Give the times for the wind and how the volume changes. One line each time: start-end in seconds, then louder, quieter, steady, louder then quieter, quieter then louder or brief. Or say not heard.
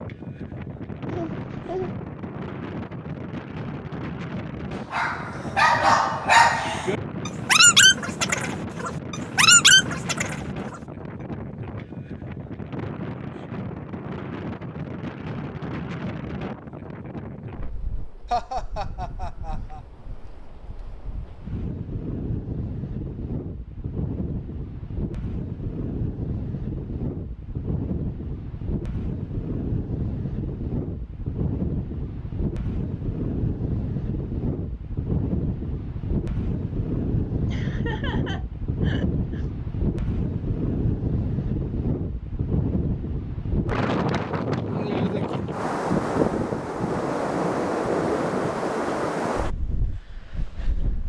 0.0-51.0 louder.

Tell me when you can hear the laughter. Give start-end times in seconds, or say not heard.
1.1-1.9, 18.3-19.8, 37.5-39.5.